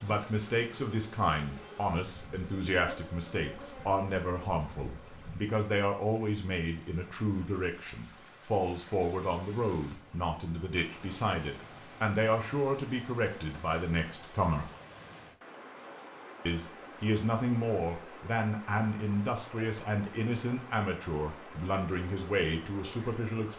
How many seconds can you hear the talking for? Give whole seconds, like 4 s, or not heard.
22 s.